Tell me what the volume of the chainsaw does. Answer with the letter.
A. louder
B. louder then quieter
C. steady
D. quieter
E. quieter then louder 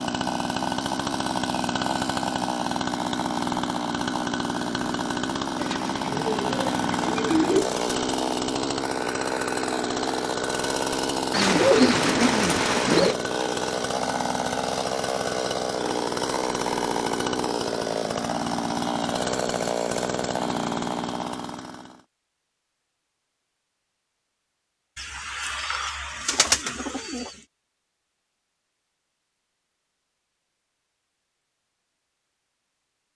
C.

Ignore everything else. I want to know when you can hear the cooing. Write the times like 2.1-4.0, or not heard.
5.5-7.7, 11.3-13.2, 24.9-27.3.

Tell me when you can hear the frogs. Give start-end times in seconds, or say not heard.
not heard.